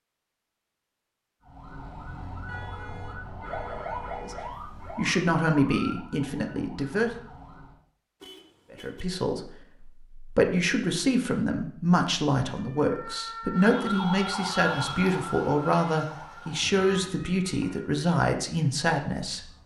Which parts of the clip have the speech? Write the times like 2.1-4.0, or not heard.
4.2-7.1, 8.7-19.4.